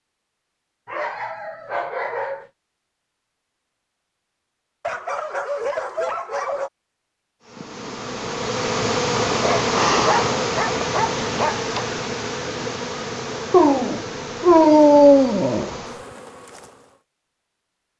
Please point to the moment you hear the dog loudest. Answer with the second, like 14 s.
15 s.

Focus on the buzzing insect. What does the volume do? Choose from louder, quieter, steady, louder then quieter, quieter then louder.
quieter.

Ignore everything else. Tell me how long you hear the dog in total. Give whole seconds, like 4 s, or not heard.
8 s.